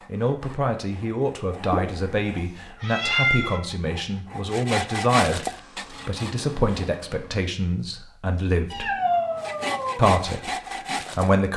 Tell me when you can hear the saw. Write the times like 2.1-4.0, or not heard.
0.0-7.0, 9.3-11.3.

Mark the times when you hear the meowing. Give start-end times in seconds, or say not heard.
1.6-3.6, 8.7-10.1.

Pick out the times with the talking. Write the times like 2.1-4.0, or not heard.
0.1-8.9, 9.9-11.5.